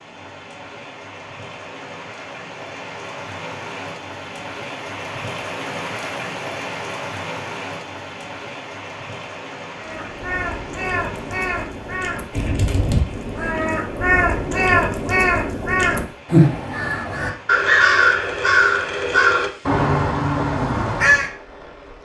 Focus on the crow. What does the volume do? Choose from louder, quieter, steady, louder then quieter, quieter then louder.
louder.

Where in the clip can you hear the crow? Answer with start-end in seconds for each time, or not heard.
9.8-21.3.